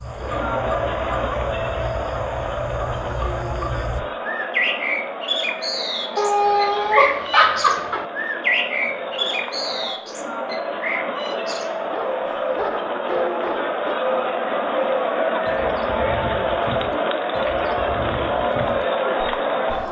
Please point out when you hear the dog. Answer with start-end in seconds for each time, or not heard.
6.2-8.1, 11.2-14.0.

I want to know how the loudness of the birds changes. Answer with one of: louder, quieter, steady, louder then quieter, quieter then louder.
louder then quieter.